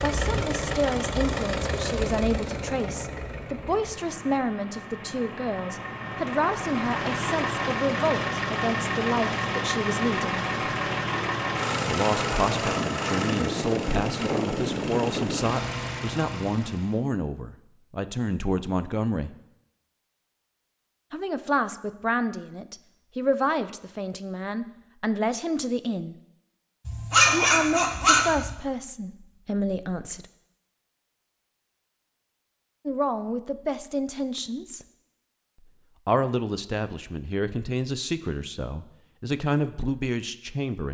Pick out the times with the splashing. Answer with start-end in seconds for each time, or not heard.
not heard.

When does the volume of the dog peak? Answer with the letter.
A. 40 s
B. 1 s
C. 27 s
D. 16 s
C.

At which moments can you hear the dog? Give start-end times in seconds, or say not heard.
26.9-28.6.